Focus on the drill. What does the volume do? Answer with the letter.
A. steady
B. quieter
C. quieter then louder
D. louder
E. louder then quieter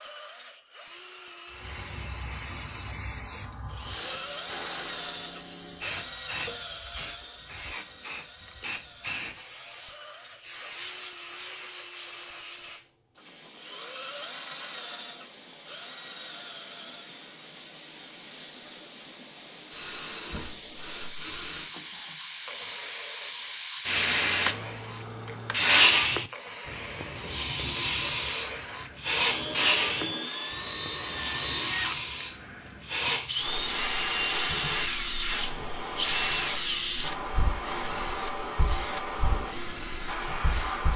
C.